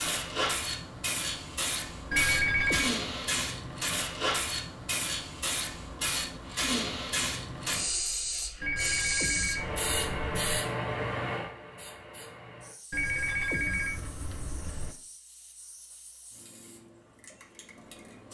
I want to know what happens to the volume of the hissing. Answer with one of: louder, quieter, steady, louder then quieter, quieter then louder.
quieter.